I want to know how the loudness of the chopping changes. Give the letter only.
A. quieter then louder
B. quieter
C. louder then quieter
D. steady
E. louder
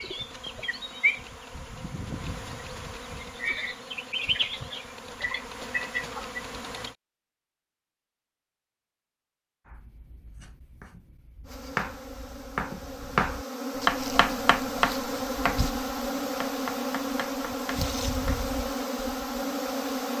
C.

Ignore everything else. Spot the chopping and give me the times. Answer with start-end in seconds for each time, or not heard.
9.7-18.4.